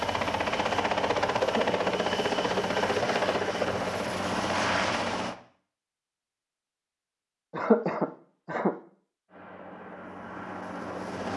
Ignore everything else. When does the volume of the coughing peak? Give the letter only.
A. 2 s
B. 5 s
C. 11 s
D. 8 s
D.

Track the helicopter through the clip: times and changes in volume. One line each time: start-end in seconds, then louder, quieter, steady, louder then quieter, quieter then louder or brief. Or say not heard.
0.0-5.3 steady
9.2-11.3 brief.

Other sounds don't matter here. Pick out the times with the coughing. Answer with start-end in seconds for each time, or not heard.
1.4-1.8, 7.5-8.8.